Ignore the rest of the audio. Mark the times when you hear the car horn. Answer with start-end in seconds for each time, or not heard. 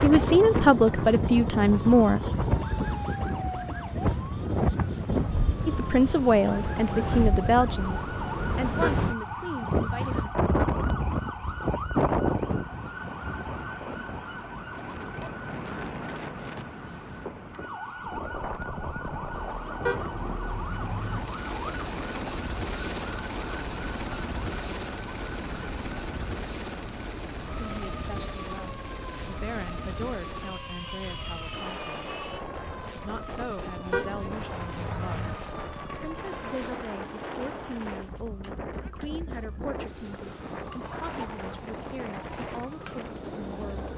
8.8-10.2, 19.9-21.2, 33.9-35.4.